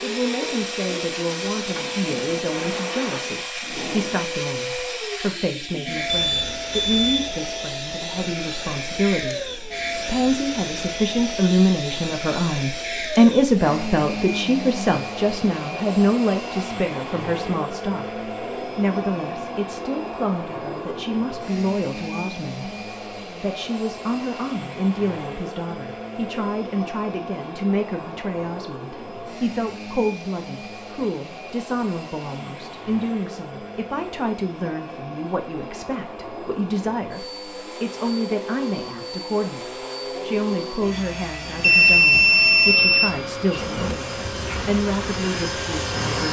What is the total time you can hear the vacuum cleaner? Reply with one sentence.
The vacuum cleaner can be heard for 46 seconds in total.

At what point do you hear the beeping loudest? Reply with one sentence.
The loudest moment of the beeping is at 42 seconds.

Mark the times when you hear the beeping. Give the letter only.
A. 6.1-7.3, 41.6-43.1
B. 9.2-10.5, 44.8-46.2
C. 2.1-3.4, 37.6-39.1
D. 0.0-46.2
A.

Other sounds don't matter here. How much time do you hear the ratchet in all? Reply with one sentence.
You can't hear the ratchet here.